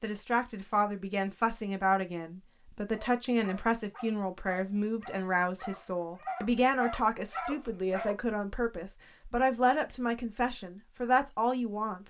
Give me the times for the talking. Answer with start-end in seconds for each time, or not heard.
0.0-12.0.